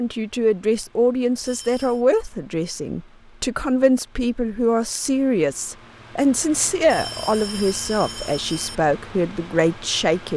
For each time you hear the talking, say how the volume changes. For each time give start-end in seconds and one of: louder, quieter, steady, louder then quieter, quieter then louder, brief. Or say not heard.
0.0-10.3 steady.